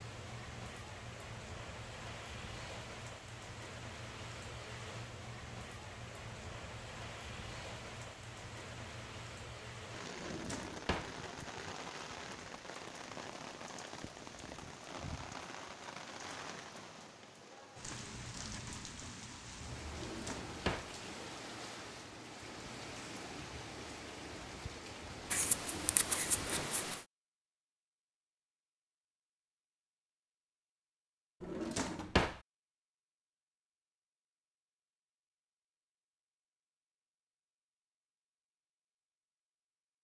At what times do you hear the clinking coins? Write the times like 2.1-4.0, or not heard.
not heard.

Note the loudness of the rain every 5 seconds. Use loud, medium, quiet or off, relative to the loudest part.
loud, loud, loud, loud, loud, loud, off, off.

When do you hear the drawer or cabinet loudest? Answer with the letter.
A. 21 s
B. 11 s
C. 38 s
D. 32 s
D.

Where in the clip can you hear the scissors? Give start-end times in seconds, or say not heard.
25.3-27.1.